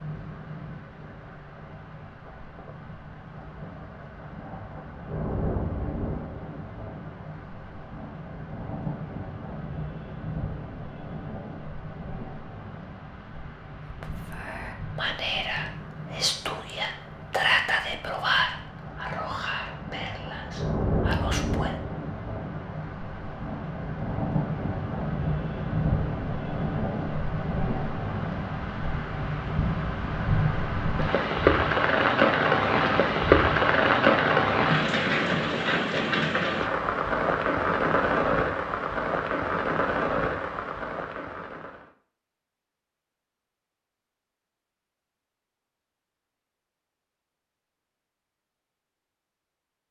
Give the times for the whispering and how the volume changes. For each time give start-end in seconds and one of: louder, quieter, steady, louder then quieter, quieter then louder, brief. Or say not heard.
13.9-21.8 louder then quieter.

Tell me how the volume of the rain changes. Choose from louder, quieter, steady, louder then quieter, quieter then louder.
louder.